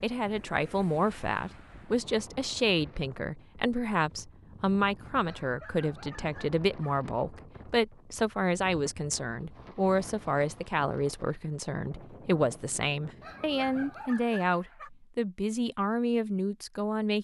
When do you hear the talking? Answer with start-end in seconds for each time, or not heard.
0.0-17.1.